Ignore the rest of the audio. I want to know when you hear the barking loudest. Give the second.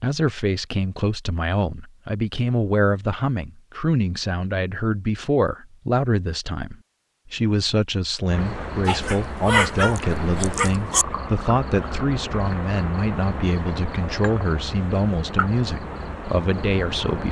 10 s.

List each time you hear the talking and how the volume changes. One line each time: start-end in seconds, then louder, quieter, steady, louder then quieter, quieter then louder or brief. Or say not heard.
0.0-17.2 steady.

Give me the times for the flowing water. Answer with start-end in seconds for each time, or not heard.
not heard.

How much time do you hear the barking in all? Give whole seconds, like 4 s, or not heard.
2 s.